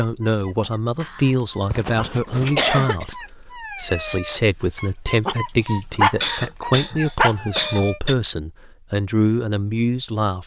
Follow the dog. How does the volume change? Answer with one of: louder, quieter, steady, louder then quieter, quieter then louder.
louder.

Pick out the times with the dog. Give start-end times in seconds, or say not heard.
0.0-8.0.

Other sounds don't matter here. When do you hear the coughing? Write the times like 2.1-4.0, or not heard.
1.0-3.0, 5.5-8.2.